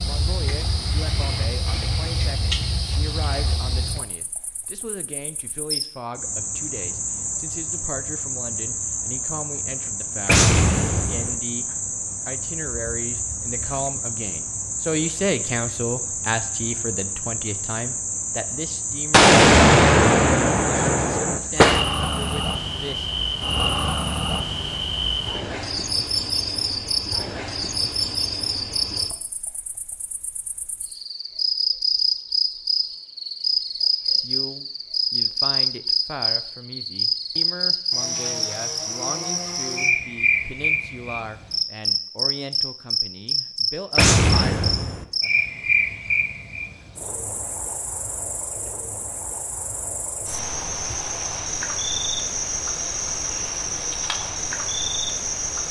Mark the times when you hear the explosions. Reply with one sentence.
You can hear the explosions from 10.2 to 11.3 s, from 19.1 to 21.9 s and from 44.0 to 45.0 s.